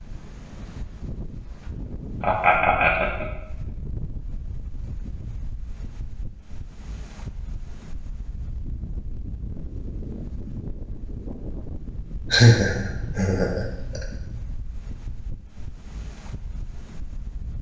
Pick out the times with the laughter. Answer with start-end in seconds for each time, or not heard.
2.2-3.2, 12.3-14.1.